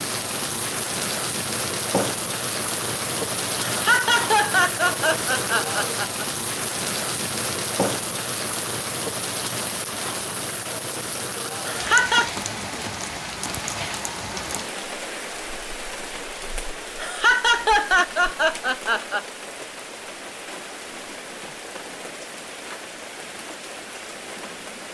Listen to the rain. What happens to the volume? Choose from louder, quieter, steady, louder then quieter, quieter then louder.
quieter.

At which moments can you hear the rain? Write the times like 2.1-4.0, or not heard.
0.0-24.8.